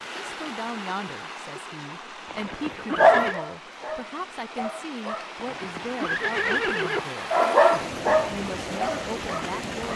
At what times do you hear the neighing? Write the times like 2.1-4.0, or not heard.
2.2-3.4, 5.3-7.1.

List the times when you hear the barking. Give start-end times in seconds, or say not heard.
3.0-5.5, 7.3-9.9.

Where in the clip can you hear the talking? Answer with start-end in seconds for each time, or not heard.
0.2-9.9.